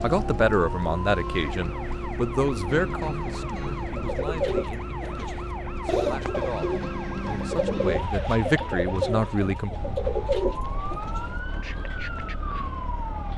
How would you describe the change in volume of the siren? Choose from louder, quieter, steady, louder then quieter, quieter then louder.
steady.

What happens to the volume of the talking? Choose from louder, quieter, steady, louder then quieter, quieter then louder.
quieter then louder.